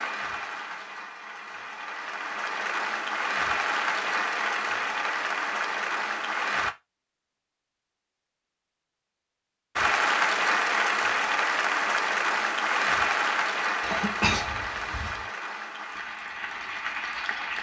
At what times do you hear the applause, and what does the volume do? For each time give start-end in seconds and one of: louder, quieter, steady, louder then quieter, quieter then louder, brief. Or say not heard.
0.0-6.8 louder
9.8-17.5 quieter.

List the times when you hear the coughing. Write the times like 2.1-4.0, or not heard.
13.8-15.2.